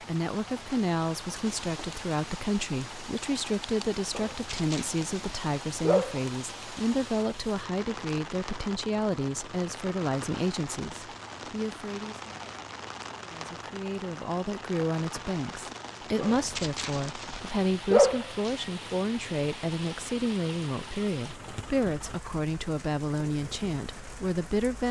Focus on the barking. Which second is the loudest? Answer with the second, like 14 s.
18 s.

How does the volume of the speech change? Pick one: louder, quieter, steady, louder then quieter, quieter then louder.
steady.